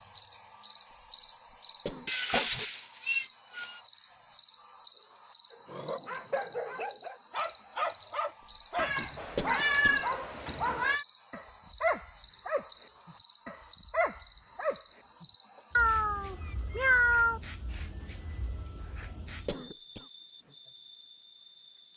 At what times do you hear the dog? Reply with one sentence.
You can hear the dog from 5.5 to 15.6 s.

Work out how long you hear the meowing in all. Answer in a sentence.
You can hear the meowing for 6 seconds altogether.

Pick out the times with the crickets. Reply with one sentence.
The crickets can be heard from 0.0 to 21.9 s.